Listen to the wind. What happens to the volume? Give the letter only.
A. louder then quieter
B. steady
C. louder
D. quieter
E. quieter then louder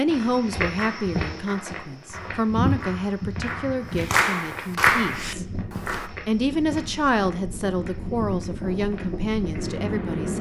C.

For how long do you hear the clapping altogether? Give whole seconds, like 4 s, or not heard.
6 s.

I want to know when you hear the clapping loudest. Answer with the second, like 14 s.
5 s.